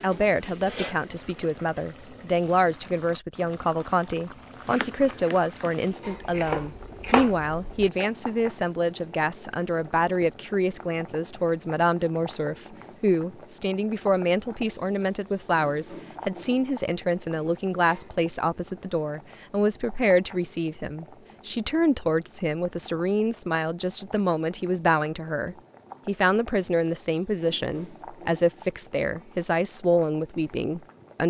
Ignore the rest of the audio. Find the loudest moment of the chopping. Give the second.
7 s.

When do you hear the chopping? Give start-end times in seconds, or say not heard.
4.7-8.1.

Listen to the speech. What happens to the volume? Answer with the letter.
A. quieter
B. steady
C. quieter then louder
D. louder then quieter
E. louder
B.